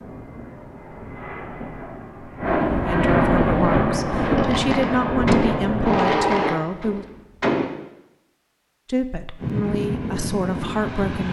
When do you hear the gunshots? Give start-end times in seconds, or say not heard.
4.2-7.7.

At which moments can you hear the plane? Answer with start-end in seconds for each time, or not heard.
0.0-6.6, 9.4-11.2.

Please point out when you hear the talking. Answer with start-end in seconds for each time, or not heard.
2.9-7.0, 8.8-11.2.